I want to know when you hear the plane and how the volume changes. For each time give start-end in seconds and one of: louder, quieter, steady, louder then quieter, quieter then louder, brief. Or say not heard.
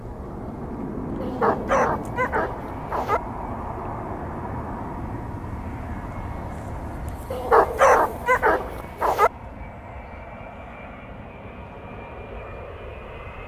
0.0-13.4 quieter.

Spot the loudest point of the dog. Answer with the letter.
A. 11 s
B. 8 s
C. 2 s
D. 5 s
B.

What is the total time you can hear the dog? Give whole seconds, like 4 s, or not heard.
4 s.